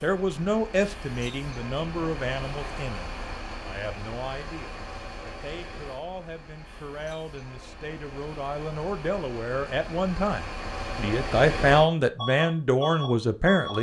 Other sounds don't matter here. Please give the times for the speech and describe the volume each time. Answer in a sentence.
You can hear the speech from 0.0 to 13.7 s, getting quieter then louder.